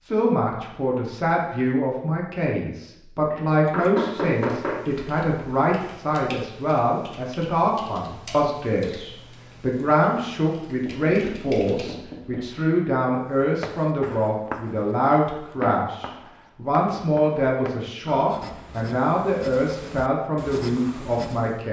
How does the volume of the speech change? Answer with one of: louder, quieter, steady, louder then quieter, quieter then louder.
steady.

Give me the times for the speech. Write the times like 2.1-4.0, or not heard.
0.1-21.6.